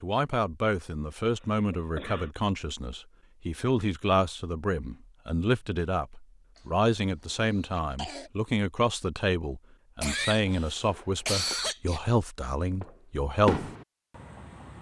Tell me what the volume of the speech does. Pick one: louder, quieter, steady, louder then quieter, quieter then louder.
steady.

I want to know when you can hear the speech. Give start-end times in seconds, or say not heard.
0.0-13.7.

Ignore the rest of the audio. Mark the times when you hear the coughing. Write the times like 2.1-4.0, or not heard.
1.7-2.3, 7.3-8.3, 10.0-12.0.